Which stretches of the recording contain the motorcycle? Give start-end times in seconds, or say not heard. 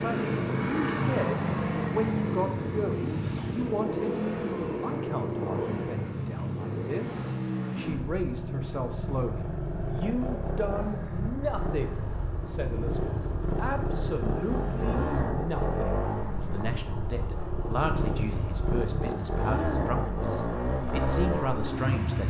0.0-22.2.